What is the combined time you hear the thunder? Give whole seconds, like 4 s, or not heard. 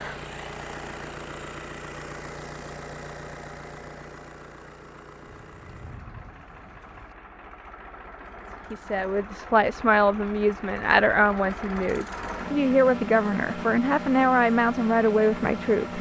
2 s.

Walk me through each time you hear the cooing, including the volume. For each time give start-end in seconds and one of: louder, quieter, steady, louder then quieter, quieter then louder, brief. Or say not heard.
not heard.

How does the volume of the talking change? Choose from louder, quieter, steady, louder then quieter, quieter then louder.
steady.